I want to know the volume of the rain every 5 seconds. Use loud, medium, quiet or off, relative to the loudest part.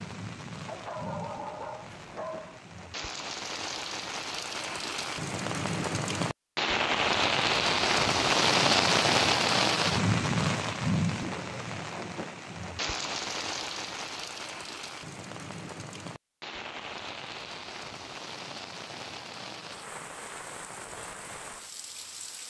quiet, loud, medium, quiet, quiet.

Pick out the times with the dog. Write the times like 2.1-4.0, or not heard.
0.7-2.6.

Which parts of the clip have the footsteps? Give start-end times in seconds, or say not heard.
not heard.